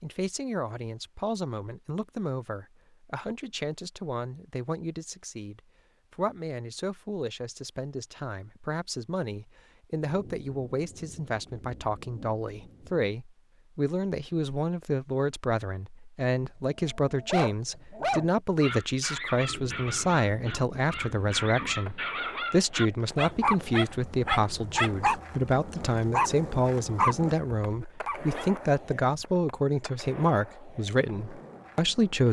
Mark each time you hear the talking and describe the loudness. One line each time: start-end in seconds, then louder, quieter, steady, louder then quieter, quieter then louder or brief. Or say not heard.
0.0-32.2 louder.